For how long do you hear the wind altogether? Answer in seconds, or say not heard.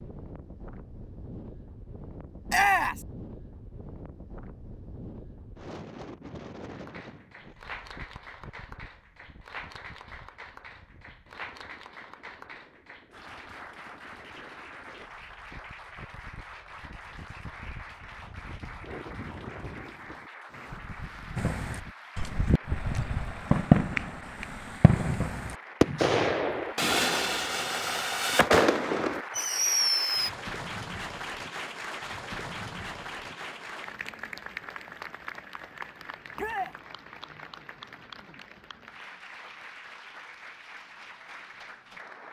22 s.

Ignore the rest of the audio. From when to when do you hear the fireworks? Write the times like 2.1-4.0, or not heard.
21.4-30.3.